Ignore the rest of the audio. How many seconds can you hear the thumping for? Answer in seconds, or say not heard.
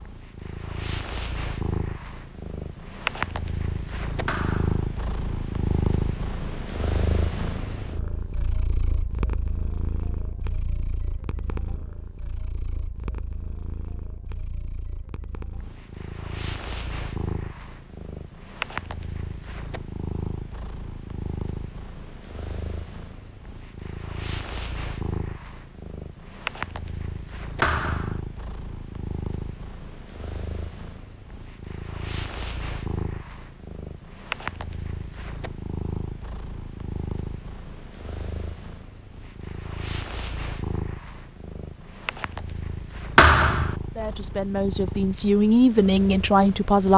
2 s.